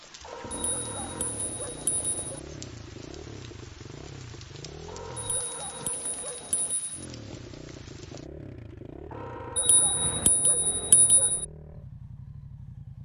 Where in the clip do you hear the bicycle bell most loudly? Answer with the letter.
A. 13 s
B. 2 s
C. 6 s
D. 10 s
D.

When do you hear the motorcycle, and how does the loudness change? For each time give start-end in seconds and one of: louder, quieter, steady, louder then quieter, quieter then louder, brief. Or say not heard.
0.1-5.5 steady
6.9-12.9 steady.